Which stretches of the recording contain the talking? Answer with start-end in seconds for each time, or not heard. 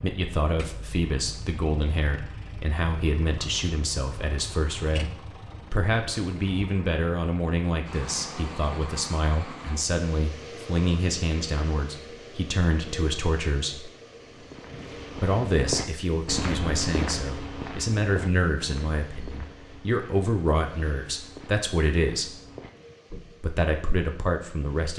0.0-13.9, 15.2-22.3, 23.4-24.9.